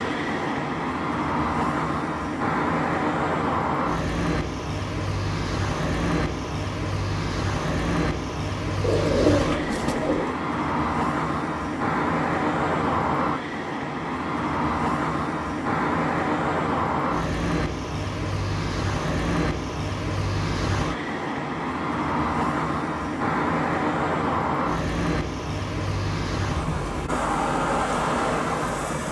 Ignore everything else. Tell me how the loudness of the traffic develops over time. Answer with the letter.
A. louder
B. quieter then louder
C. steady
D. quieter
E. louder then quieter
C.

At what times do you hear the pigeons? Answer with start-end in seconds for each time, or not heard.
8.8-10.3.